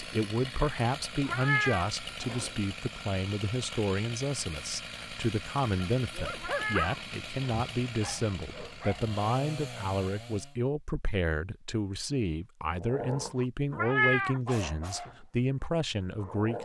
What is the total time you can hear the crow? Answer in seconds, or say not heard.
not heard.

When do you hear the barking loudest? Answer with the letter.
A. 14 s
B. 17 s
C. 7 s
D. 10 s
C.